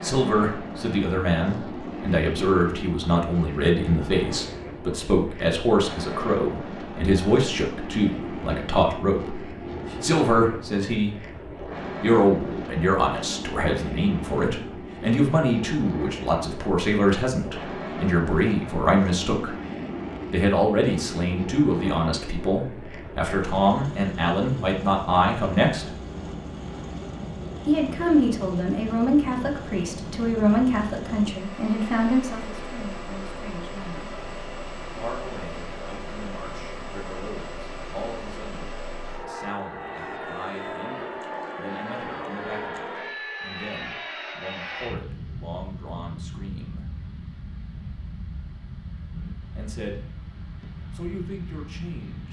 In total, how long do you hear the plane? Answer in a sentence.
The plane can be heard for 52 seconds in total.